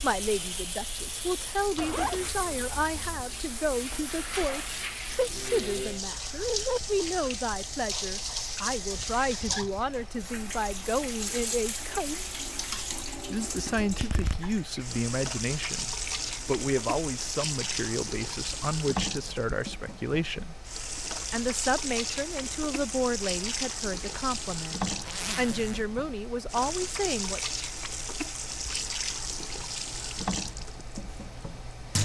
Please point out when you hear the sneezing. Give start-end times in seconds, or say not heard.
not heard.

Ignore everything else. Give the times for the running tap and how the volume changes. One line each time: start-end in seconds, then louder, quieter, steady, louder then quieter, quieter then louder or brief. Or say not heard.
0.0-31.9 steady.